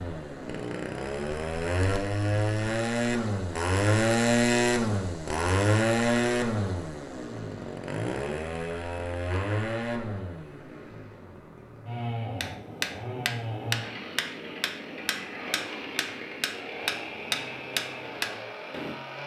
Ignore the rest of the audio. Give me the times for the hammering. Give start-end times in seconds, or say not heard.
12.3-18.9.